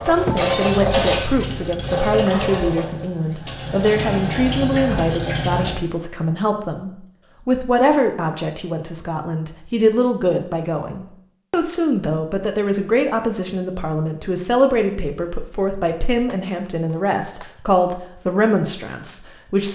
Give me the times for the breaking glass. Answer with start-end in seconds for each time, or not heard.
0.2-1.8, 16.2-17.6.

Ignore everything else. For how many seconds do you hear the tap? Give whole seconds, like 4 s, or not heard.
6 s.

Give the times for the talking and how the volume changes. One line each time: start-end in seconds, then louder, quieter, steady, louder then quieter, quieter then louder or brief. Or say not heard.
0.0-19.7 steady.